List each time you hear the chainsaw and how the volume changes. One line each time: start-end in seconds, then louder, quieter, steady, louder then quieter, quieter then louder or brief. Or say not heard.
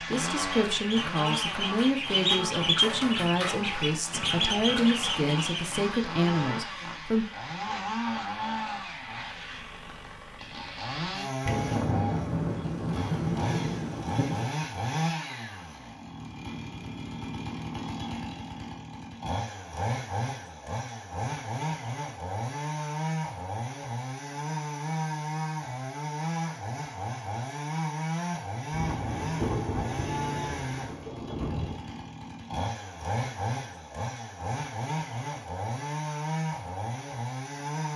0.0-37.9 steady.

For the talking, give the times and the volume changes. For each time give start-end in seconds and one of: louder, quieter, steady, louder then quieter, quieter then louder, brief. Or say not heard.
0.0-7.3 steady.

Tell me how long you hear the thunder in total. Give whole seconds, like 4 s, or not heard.
6 s.